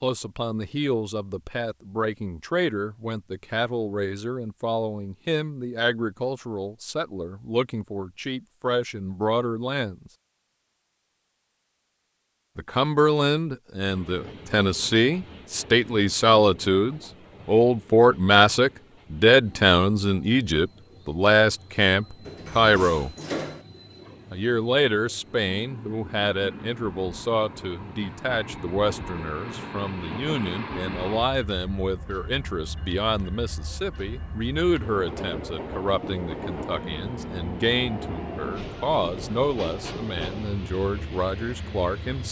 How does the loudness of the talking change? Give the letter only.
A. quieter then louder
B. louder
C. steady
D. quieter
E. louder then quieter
E.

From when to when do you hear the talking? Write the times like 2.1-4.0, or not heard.
0.0-10.1, 12.6-23.1, 24.3-42.2.